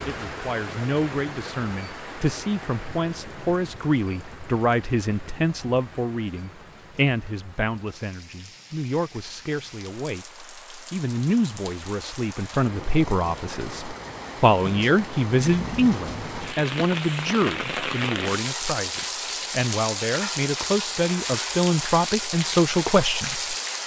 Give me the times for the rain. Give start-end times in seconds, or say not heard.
0.0-23.8.